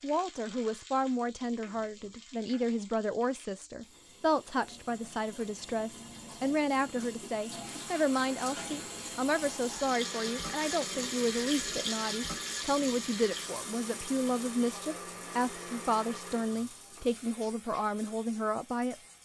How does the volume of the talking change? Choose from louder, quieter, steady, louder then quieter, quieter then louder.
steady.